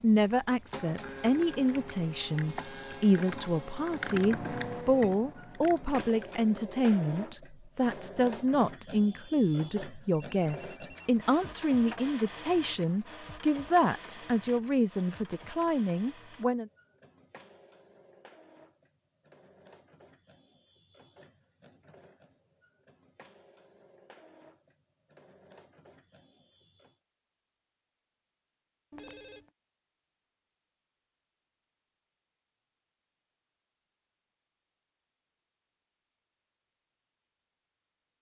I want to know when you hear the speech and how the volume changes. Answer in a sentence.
You can hear the speech from 0.0 to 16.7 s, at a steady volume.